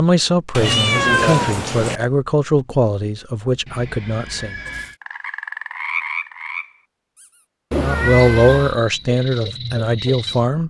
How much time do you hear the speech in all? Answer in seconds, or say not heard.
7 s.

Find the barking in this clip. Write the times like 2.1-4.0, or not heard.
not heard.